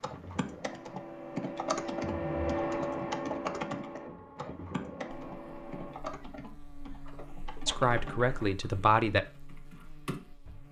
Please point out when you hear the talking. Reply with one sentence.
You can hear the talking from 7.7 to 9.2 s.